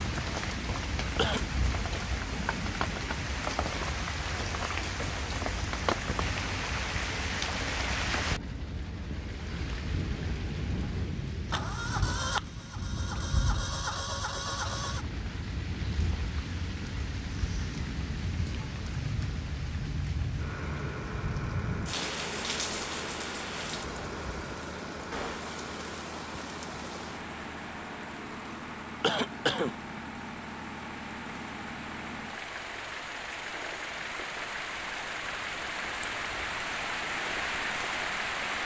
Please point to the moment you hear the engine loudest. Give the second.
12 s.